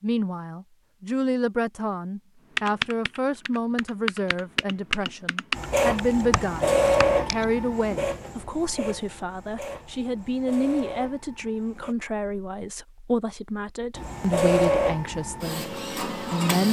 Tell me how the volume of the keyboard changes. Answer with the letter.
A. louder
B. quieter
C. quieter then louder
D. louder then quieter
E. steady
D.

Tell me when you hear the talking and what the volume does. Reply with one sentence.
The talking can be heard from 0.0 to 16.6 s, at a steady volume.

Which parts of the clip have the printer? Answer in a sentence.
You can hear the printer from 5.5 to 11.9 s and from 13.9 to 16.6 s.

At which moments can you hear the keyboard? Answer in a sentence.
The keyboard can be heard from 2.5 to 7.5 s.